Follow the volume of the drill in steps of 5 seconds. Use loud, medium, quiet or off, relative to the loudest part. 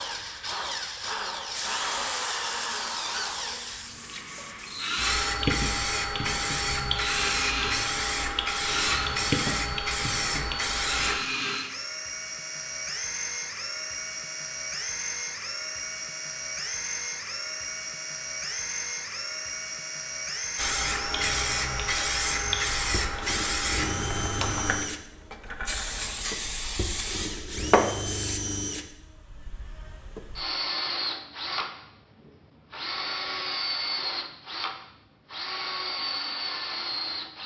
loud, loud, loud, loud, loud, medium, loud, loud.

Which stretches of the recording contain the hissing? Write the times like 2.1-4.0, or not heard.
1.5-11.2, 20.6-28.4.